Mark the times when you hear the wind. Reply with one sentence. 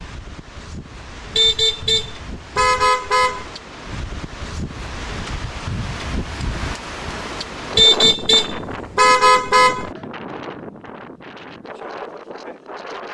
You can hear the wind from 0.0 to 13.0 s.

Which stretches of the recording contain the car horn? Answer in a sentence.
The car horn can be heard from 1.4 to 3.5 s and from 7.8 to 9.9 s.